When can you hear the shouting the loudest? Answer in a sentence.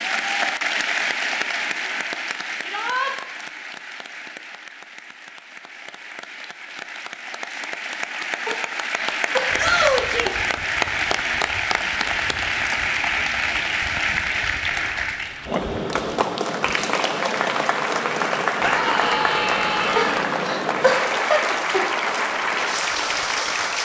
The volume of the shouting peaks at 10 seconds.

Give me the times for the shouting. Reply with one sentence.
You can hear the shouting from 2.6 to 3.1 s, from 9.6 to 10.2 s and from 18.6 to 20.2 s.